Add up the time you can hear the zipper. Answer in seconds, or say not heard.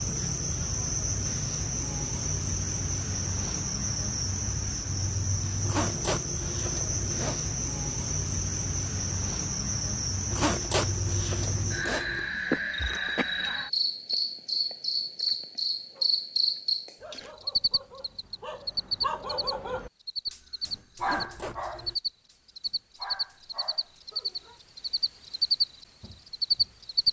5 s.